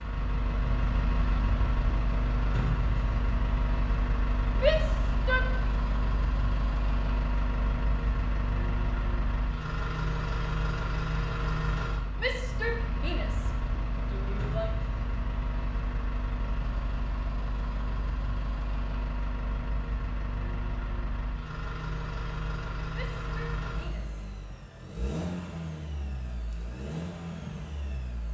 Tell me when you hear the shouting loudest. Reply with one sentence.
The loudest moment of the shouting is at 5 seconds.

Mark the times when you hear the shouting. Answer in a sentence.
You can hear the shouting from 4.5 to 5.7 s, from 12.2 to 14.7 s and from 22.9 to 24.2 s.